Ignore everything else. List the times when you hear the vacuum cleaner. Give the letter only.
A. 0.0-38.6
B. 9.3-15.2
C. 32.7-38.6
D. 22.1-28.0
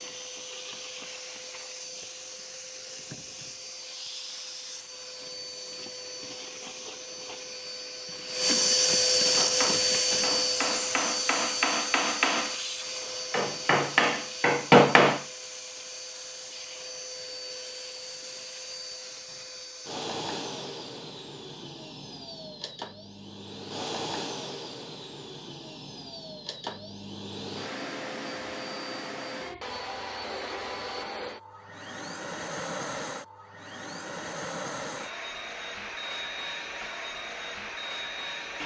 A.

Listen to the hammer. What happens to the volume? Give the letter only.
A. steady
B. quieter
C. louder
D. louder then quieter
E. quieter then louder
C.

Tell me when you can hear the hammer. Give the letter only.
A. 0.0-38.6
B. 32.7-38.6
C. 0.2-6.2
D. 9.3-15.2
D.